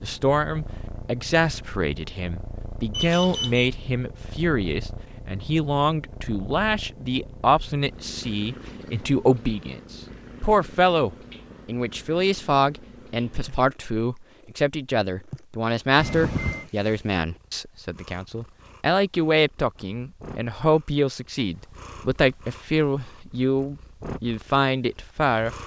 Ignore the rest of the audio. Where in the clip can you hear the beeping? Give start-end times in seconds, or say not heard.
2.9-3.7, 15.9-16.6.